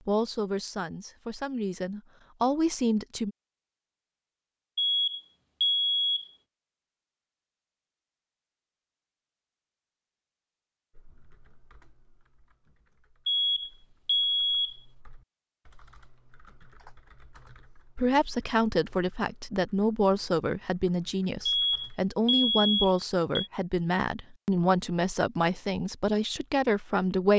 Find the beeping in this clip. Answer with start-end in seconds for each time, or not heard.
4.8-6.3, 13.2-14.8, 21.4-23.5.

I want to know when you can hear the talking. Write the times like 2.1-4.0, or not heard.
0.1-3.3, 17.9-27.3.